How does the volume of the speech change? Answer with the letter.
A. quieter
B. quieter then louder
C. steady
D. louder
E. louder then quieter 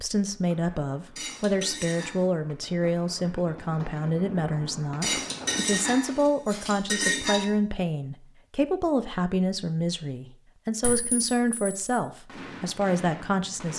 C.